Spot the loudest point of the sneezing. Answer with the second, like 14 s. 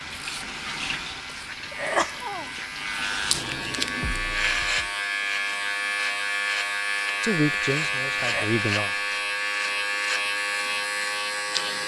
2 s.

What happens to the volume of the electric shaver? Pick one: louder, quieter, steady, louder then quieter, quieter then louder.
louder.